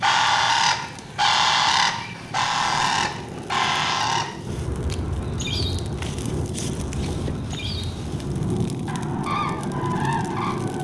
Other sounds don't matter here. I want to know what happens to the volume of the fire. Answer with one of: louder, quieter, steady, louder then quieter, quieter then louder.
louder.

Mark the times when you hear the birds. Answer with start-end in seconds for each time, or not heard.
0.0-10.7.